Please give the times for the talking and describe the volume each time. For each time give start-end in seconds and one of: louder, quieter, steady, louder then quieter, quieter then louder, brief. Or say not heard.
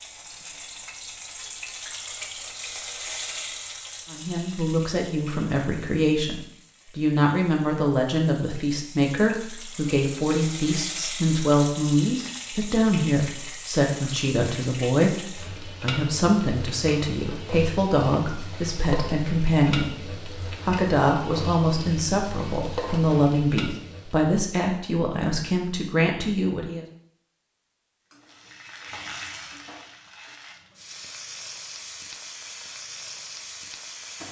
4.1-26.9 steady.